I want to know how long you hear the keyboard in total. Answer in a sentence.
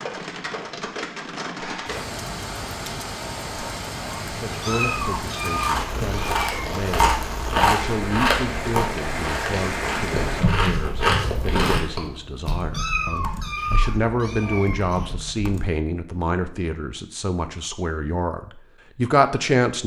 The keyboard can be heard for 6 seconds in total.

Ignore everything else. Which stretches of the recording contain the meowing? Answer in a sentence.
You can hear the meowing from 4.6 to 6.8 s and from 12.7 to 15.1 s.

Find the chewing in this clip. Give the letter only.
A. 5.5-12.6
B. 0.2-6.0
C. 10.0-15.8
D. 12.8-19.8
A.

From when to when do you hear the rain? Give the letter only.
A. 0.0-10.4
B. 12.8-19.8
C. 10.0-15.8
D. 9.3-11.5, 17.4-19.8
A.